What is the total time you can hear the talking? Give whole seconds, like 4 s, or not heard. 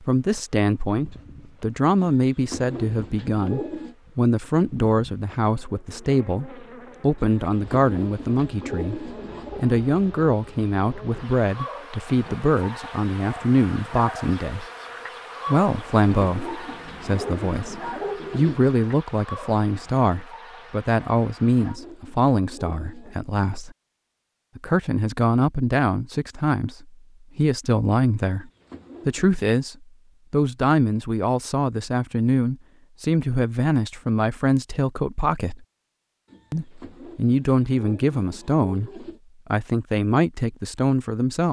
39 s.